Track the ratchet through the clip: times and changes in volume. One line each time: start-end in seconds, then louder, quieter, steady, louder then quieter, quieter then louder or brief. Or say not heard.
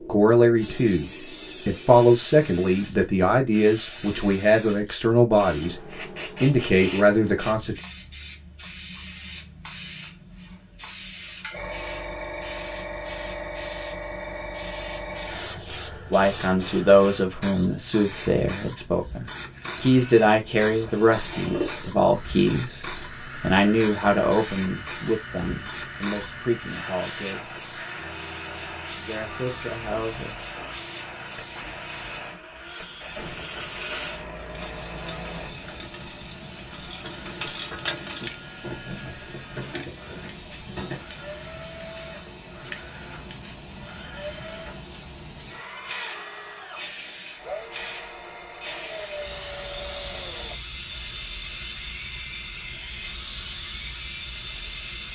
34.4-41.0 louder then quieter.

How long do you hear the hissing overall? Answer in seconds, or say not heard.
55 s.